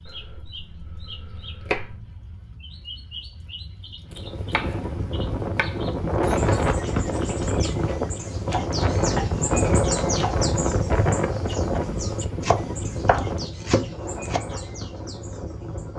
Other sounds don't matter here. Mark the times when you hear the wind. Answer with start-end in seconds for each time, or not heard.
4.1-15.9.